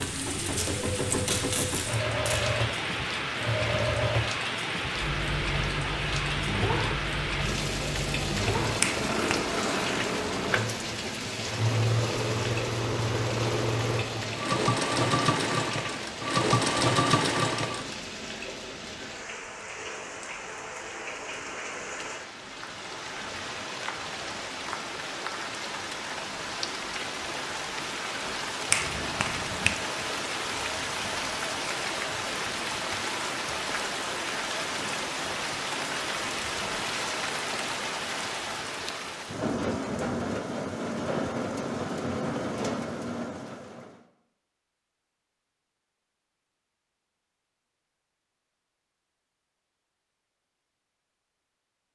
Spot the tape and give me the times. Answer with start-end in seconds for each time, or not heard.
0.5-2.4.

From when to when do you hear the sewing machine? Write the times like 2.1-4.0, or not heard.
0.0-17.9.